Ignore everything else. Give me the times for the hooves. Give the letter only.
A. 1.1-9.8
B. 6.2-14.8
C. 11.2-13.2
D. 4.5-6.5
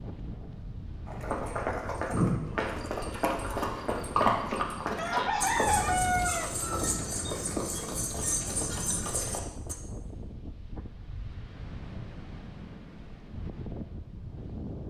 A.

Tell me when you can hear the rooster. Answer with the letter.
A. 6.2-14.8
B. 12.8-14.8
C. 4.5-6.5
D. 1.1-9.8
C.